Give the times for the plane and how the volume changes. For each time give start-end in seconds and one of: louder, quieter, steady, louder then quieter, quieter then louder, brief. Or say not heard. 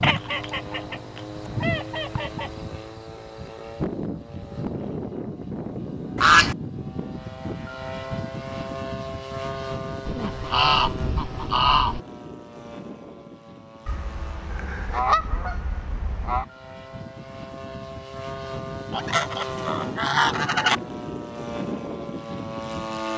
0.0-23.1 quieter then louder.